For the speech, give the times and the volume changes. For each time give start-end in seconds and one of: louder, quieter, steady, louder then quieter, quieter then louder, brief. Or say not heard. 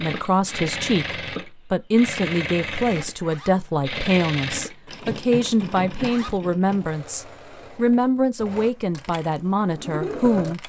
0.0-10.6 steady.